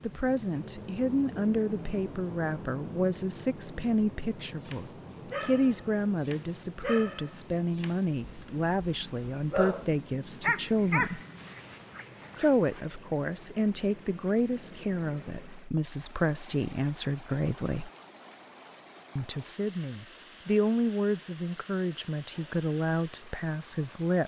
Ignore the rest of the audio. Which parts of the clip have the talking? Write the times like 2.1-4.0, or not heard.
0.0-11.2, 12.3-17.9, 19.1-24.2.